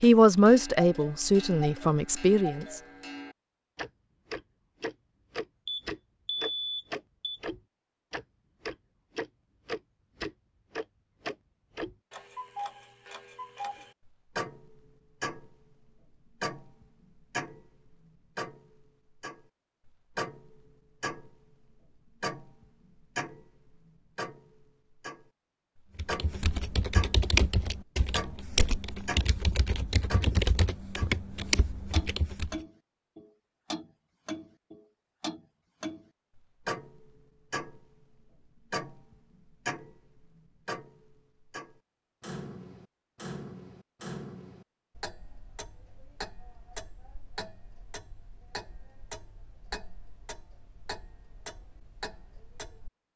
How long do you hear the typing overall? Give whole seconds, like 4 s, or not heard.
7 s.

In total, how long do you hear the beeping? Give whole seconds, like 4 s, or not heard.
2 s.